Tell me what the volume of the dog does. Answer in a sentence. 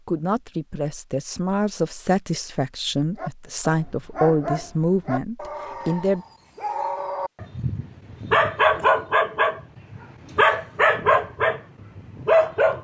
The volume of the dog goes up.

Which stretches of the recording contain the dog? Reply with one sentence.
You can hear the dog from 3.1 to 12.7 s.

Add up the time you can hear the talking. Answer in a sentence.
The talking can be heard for 6 seconds in total.